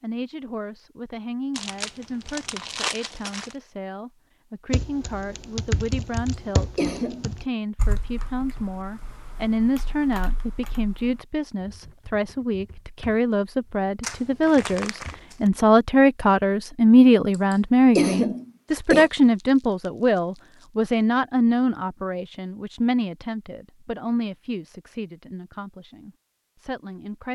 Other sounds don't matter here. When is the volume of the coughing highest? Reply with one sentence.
The volume of the coughing peaks at 18 seconds.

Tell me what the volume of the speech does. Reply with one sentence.
The volume of the speech goes up, then down.